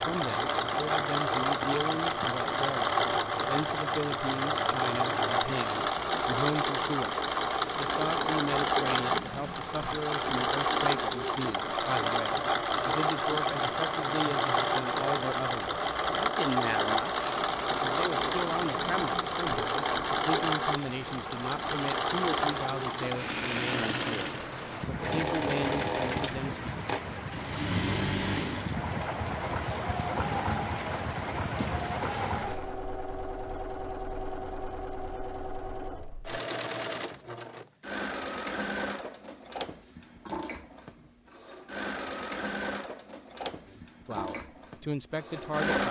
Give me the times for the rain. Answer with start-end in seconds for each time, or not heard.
0.0-32.8.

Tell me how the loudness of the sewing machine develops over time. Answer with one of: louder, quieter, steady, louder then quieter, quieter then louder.
quieter.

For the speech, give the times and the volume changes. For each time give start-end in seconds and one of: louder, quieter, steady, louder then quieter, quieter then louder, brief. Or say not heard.
0.0-26.7 steady
43.6-45.8 brief.